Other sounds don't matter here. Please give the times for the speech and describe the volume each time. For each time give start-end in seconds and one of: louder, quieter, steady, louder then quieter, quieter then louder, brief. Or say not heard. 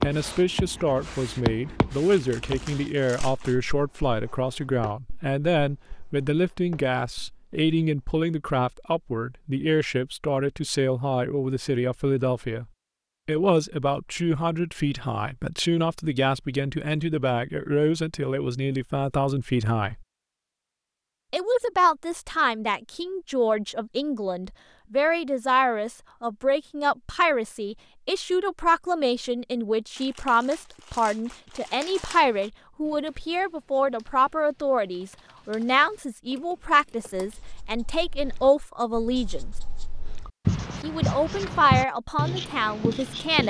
0.0-12.7 steady
13.2-20.1 steady
21.3-39.5 steady
40.8-43.4 brief.